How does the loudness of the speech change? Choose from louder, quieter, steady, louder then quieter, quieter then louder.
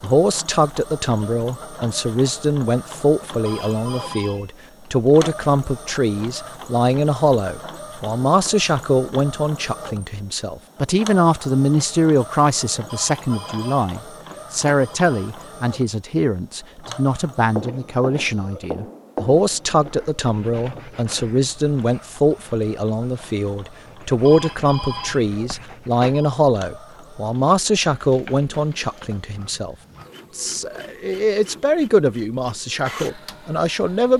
steady.